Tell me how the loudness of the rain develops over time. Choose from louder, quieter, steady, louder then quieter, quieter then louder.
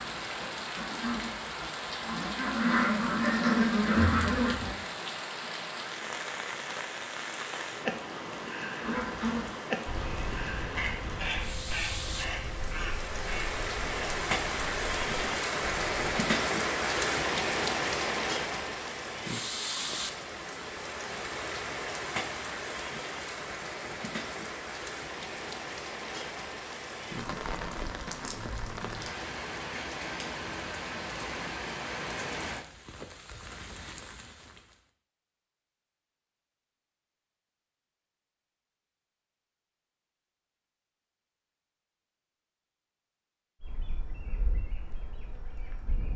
louder then quieter.